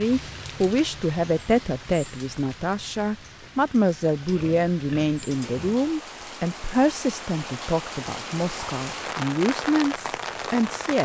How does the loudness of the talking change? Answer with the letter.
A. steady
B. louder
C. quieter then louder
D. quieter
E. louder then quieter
A.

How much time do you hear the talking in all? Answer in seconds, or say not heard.
11 s.